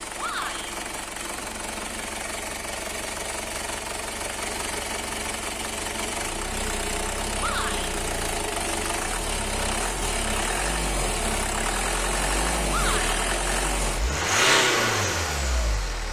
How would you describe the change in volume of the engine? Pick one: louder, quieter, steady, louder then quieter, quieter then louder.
louder.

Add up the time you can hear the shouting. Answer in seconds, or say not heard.
2 s.